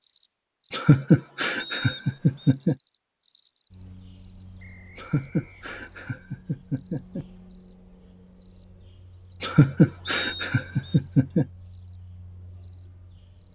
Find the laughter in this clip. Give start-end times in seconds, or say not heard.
0.7-2.8, 5.0-7.2, 9.4-11.4.